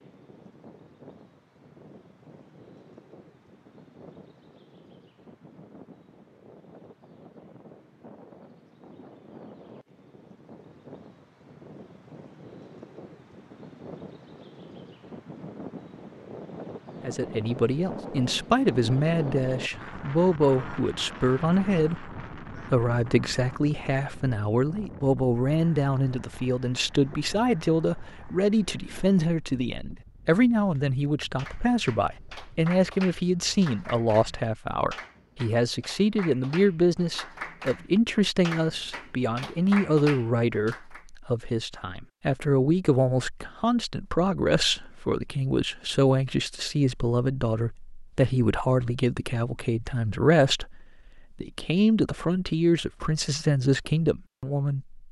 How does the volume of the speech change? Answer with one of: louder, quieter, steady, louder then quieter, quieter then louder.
steady.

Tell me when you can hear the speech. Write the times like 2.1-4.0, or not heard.
17.1-55.0.